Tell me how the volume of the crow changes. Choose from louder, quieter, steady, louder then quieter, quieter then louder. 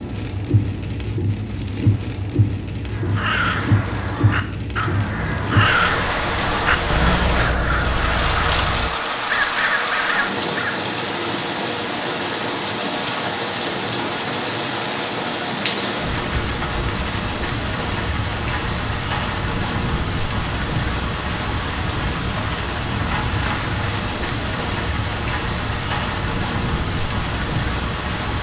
steady.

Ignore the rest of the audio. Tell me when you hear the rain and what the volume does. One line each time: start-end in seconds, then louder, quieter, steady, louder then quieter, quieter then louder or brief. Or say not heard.
0.0-28.3 steady.